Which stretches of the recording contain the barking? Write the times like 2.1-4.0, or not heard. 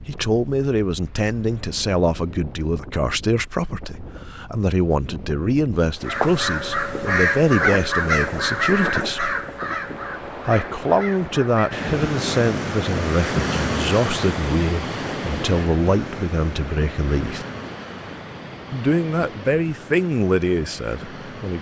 not heard.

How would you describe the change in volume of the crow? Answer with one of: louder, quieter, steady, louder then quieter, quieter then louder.
quieter.